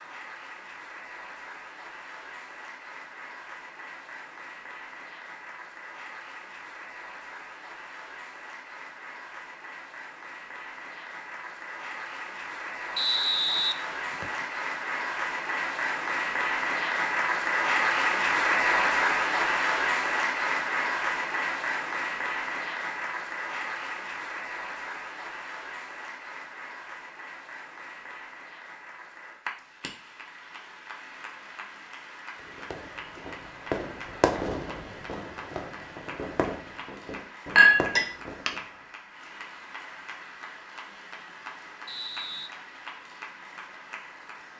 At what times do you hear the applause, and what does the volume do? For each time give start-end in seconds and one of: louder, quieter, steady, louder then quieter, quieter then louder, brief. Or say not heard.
0.0-44.5 louder then quieter.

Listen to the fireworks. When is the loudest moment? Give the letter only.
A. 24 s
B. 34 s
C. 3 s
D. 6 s
B.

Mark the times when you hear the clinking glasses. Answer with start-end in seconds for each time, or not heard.
37.5-38.5.